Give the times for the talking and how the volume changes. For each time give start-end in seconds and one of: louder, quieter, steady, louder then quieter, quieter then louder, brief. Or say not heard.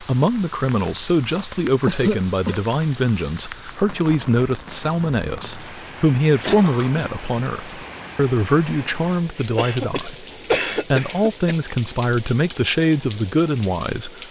0.0-14.2 steady.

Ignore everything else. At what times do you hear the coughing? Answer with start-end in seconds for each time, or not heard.
1.9-2.6, 6.4-7.2, 9.6-11.6.